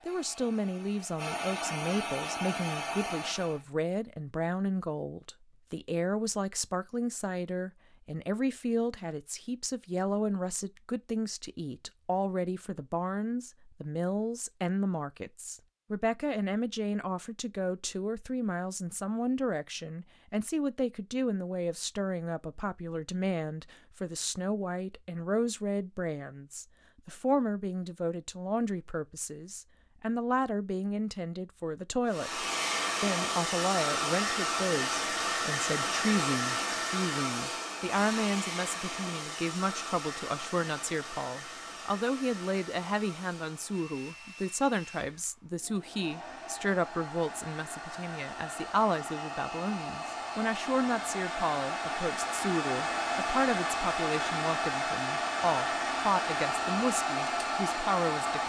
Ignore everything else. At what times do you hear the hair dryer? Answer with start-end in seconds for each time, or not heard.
0.0-3.6, 32.0-58.4.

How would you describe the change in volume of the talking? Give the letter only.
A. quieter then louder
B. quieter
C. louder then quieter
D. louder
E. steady
E.